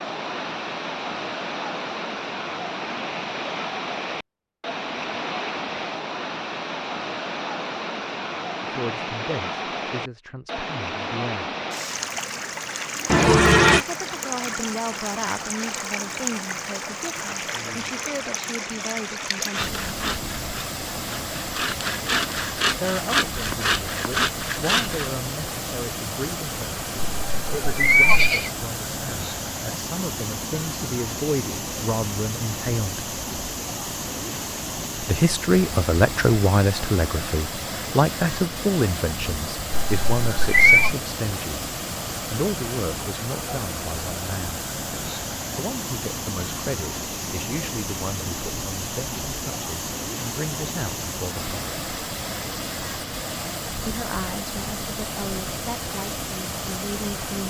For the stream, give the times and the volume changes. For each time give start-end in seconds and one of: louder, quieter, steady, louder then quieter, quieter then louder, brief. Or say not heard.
0.0-57.4 steady.